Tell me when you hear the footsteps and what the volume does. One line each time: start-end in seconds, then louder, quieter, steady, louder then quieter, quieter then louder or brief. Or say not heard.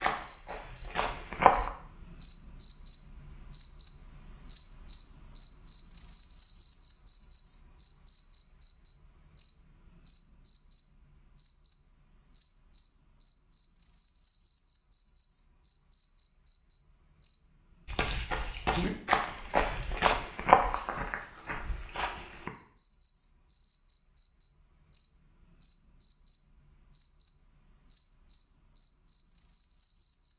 0.0-1.7 brief
17.9-22.5 louder then quieter.